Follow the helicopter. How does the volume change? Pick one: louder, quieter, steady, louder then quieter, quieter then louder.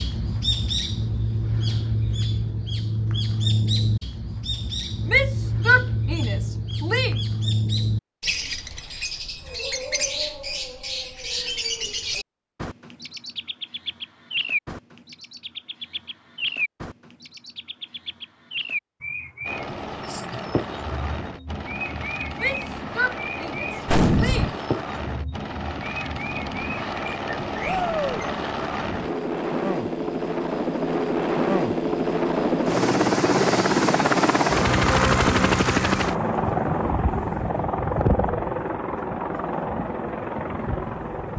louder then quieter.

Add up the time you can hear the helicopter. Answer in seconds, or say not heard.
22 s.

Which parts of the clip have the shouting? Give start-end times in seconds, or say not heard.
5.0-7.2, 22.4-24.6, 27.6-28.2.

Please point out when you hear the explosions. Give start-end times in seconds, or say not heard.
23.9-24.6.